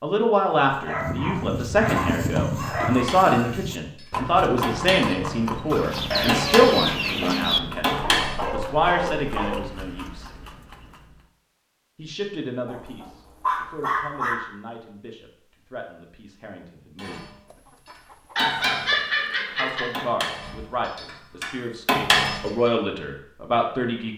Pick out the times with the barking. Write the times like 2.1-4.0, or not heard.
0.8-3.8, 8.0-9.7, 12.7-14.3, 18.4-20.1.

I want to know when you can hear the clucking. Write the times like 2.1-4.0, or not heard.
5.7-7.6, 17.5-19.0.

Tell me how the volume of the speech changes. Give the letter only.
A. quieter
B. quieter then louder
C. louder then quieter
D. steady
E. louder
B.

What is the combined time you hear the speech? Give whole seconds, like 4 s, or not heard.
20 s.